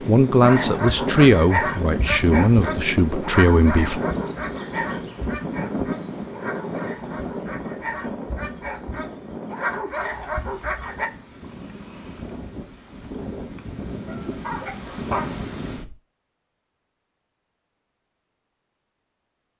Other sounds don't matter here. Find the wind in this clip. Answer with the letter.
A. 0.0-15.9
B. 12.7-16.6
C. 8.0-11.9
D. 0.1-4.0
A.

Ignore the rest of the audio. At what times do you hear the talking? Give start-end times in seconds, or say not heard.
0.1-4.0.